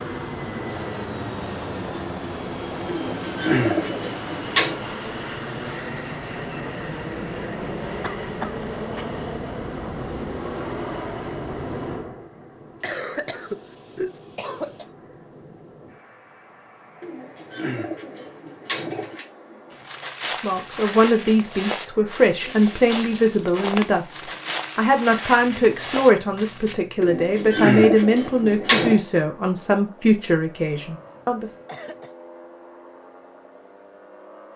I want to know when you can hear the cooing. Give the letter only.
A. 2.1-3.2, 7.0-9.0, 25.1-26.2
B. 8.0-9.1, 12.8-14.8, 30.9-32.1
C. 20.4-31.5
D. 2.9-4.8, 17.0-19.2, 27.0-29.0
D.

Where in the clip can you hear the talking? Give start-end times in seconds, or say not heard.
20.4-31.5.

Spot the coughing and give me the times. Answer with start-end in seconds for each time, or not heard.
8.0-9.1, 12.8-14.8, 30.9-32.1.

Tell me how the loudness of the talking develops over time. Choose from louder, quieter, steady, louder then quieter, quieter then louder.
steady.